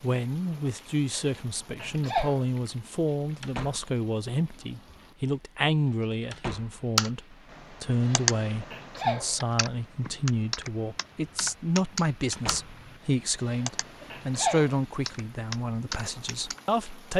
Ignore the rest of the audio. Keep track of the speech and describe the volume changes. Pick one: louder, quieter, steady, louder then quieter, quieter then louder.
steady.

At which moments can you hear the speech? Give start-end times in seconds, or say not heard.
0.0-17.1.